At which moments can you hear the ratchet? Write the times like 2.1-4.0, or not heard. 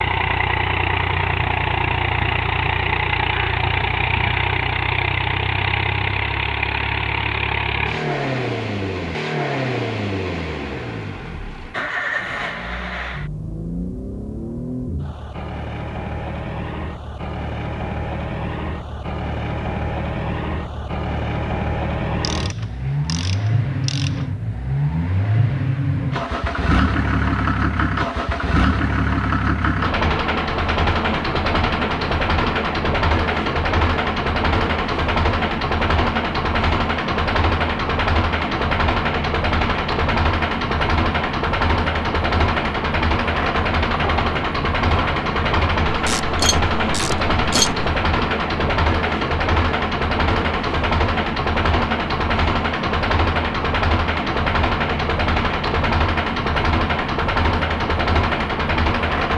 22.2-24.2, 45.9-47.9.